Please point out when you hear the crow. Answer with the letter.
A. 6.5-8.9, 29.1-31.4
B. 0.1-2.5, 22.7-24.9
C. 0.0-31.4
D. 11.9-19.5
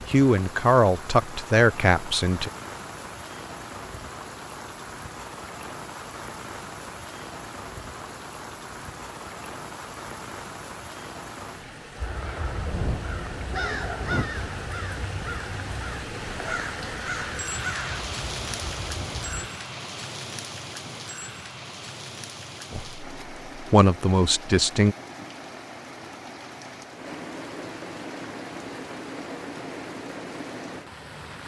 D.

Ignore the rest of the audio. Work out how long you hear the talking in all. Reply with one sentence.
You can hear the talking for 5 seconds altogether.